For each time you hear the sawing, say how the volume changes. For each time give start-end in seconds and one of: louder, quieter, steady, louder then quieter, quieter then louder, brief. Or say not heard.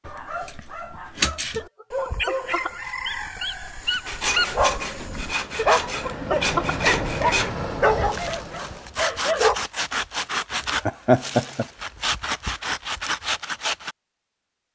4.0-13.9 steady.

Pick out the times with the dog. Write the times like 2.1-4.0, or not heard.
0.1-9.6.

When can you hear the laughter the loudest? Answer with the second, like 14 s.
11 s.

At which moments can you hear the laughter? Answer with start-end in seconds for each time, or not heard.
1.5-2.9, 5.5-6.8, 10.8-11.7.